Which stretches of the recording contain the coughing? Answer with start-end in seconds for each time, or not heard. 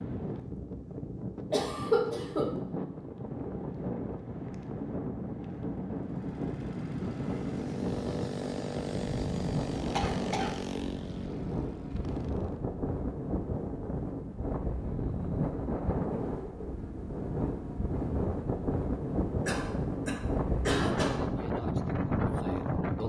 1.5-2.6, 9.9-10.6, 19.4-21.2.